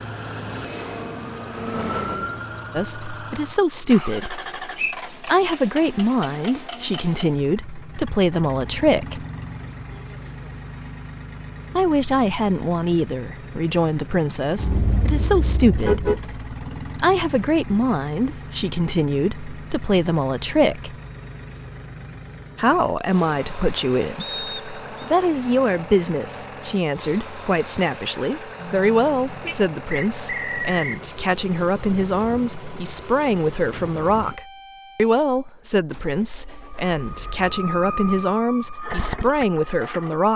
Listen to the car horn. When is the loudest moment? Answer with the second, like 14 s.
16 s.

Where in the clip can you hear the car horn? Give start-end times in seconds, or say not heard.
14.6-16.2, 28.6-29.6.